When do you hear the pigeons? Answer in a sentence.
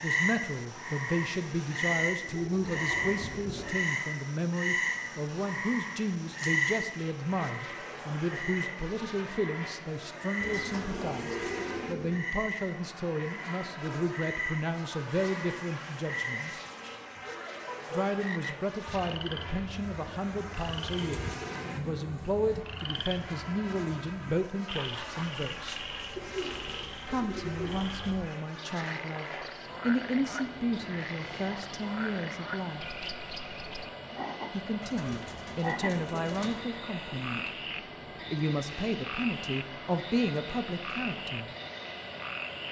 The pigeons can be heard from 2.2 to 3.8 s, from 10.4 to 12.2 s, from 20.9 to 22.6 s, from 26.1 to 27.8 s and from 34.8 to 36.6 s.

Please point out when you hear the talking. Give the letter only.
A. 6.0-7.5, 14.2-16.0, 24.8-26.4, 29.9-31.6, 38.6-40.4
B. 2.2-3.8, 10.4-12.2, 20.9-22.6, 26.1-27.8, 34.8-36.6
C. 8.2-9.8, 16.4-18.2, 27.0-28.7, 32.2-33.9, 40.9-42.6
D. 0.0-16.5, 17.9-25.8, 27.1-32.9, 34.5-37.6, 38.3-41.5
D.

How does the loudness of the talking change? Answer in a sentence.
The volume of the talking stays about the same.